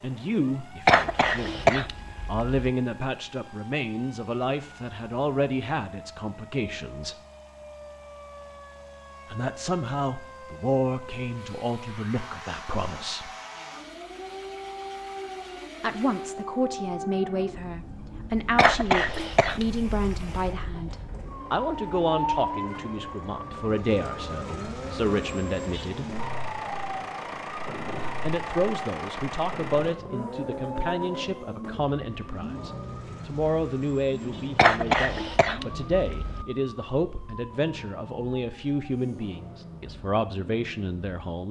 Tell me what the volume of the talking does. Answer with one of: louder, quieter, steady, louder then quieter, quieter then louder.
steady.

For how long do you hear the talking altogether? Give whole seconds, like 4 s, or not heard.
35 s.